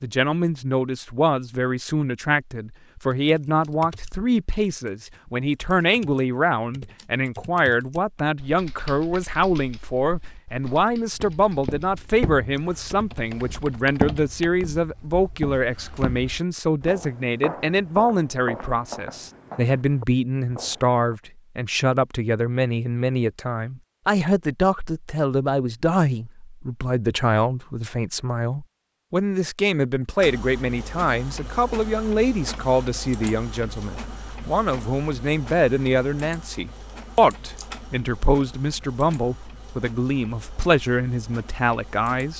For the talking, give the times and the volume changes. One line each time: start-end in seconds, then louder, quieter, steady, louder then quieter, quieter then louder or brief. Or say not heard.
0.0-42.3 steady.